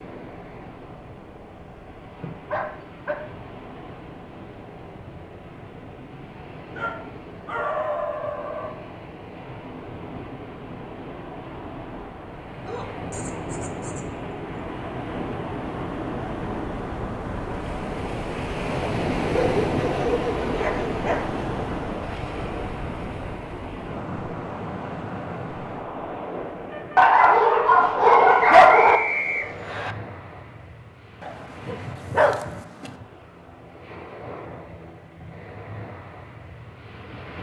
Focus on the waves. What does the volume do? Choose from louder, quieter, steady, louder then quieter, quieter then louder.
louder then quieter.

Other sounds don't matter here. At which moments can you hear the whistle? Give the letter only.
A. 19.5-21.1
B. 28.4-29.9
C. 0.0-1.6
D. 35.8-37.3
B.